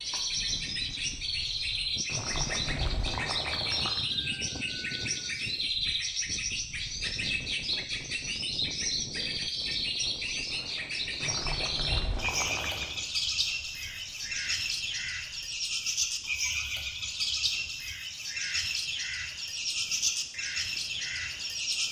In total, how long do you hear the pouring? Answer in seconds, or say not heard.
4 s.